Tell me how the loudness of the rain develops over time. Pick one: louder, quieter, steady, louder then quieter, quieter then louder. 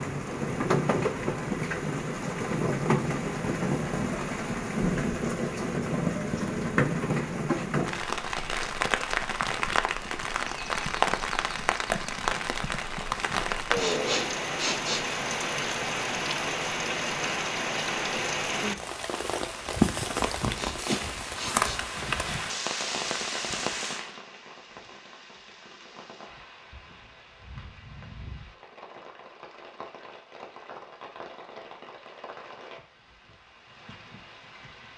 quieter.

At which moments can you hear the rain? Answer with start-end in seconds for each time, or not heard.
0.0-34.9.